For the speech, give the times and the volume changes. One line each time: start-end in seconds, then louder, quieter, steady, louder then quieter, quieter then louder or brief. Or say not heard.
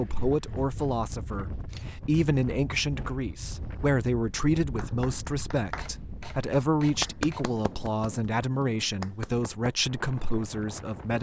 0.0-11.1 steady.